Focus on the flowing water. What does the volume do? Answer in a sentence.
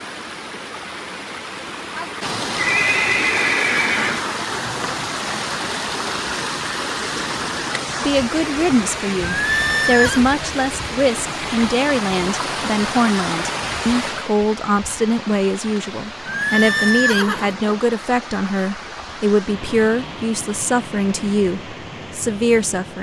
The loudness of the flowing water goes down.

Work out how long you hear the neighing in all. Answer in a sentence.
You can hear the neighing for 4 seconds altogether.